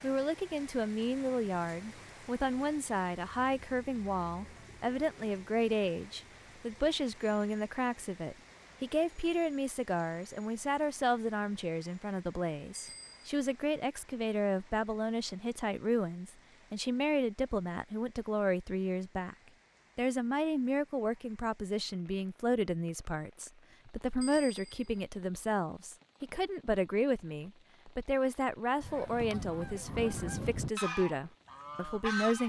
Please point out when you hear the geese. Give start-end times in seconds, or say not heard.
28.8-32.4.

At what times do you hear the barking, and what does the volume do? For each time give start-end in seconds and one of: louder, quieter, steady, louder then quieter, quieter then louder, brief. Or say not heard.
not heard.